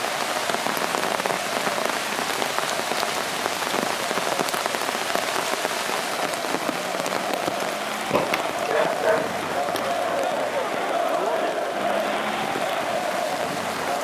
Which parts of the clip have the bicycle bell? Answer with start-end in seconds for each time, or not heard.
not heard.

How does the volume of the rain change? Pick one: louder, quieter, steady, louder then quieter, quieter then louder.
quieter.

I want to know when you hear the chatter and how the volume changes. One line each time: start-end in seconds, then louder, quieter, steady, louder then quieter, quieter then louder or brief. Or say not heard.
0.0-13.9 louder.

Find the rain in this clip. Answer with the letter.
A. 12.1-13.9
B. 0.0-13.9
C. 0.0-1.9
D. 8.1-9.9
B.